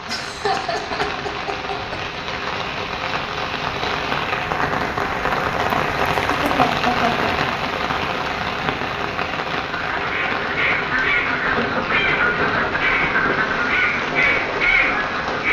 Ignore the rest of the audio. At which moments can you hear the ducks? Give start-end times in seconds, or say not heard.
9.7-15.4.